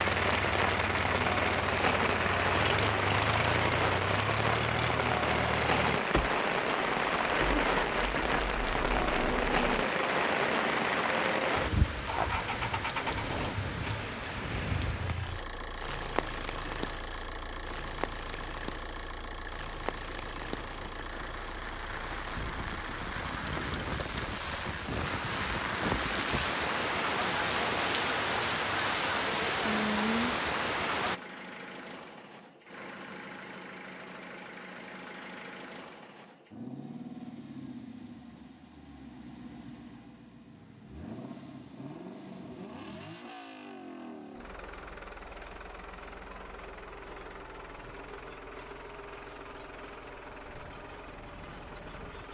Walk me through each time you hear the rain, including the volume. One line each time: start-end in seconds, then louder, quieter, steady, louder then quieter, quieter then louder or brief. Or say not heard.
0.0-31.2 quieter then louder.